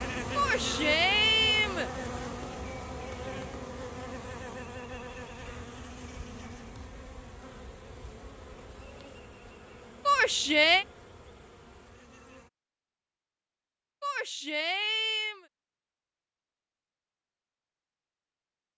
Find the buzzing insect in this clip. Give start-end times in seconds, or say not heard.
0.0-12.5.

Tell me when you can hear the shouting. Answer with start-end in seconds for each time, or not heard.
0.3-1.9, 10.1-10.8, 14.0-15.4.